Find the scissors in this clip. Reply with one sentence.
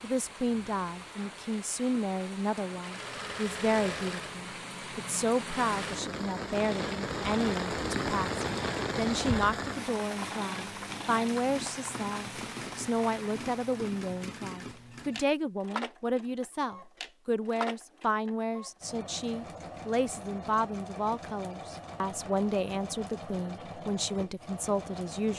You can't hear the scissors here.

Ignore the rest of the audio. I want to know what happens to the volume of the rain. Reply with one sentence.
The loudness of the rain goes up, then down.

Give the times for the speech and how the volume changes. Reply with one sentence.
You can hear the speech from 0.0 to 25.3 s, at a steady volume.